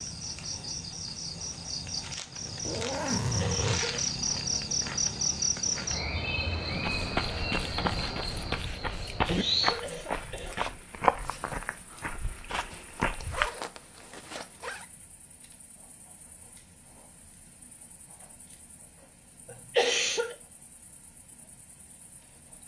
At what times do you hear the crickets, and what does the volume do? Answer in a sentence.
You can hear the crickets from 0.0 to 22.6 s, getting quieter.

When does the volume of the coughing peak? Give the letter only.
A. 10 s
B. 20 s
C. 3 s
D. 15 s
B.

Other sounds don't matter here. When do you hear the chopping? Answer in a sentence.
The chopping can't be heard in this clip.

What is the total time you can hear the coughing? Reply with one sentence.
The coughing can be heard for 3 seconds in total.